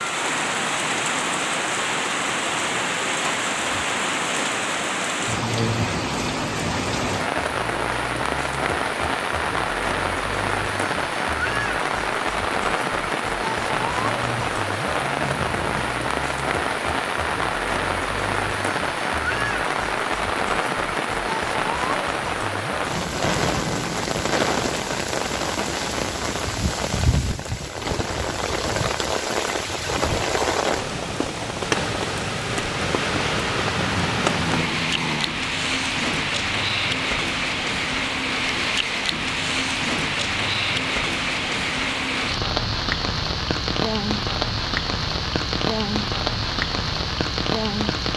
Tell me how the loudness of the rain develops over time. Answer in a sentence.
The volume of the rain stays about the same.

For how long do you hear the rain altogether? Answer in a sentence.
You can hear the rain for 48 seconds altogether.